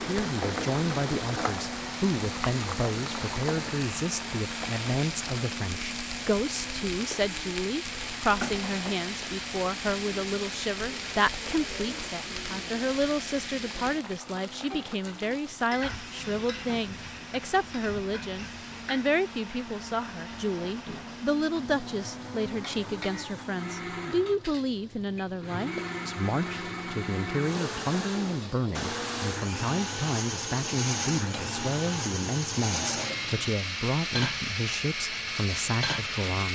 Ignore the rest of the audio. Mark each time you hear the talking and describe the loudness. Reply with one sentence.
You can hear the talking from 0.1 to 36.5 s, at a steady volume.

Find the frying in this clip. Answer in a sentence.
The frying can be heard from 0.0 to 36.3 s.